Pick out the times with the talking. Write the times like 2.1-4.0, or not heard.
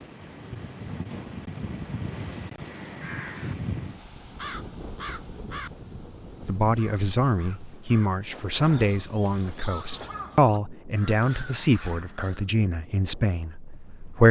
6.5-14.2.